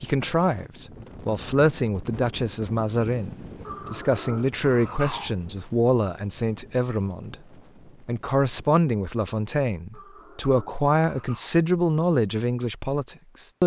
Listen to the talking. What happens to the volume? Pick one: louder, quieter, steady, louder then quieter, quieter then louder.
steady.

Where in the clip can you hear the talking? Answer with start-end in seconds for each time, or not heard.
0.0-7.3, 8.1-13.6.